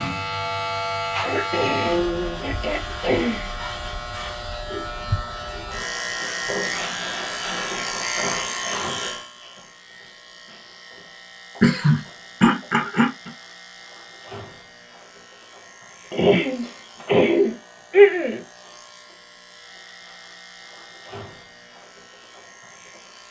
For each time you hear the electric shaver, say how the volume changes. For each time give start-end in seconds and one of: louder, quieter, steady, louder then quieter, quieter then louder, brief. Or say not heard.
0.0-23.2 quieter.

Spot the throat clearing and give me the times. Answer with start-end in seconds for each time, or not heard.
1.2-3.5, 11.6-13.3, 16.1-18.4.